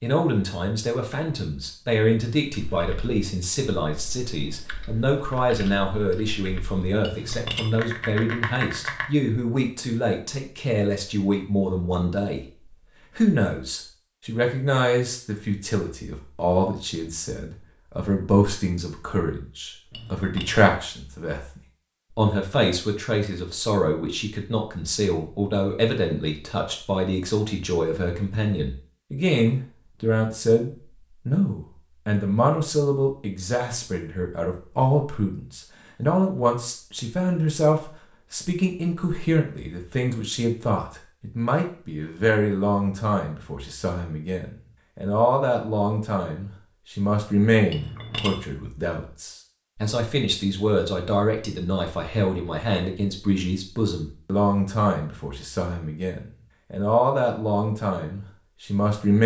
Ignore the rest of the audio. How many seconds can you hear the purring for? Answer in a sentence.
You can't hear the purring here.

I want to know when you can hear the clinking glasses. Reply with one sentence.
You can hear the clinking glasses from 7.0 to 7.8 s, from 19.9 to 20.6 s and from 47.7 to 48.5 s.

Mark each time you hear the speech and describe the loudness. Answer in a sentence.
The speech can be heard from 0.0 to 59.2 s, at a steady volume.